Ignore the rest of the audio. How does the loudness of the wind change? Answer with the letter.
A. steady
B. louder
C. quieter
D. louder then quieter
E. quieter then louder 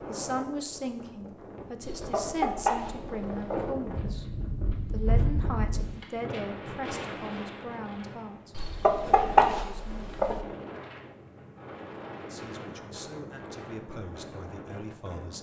D.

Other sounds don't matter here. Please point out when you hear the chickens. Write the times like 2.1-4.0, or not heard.
1.8-3.7, 8.6-10.4.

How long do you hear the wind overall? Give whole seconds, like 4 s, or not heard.
15 s.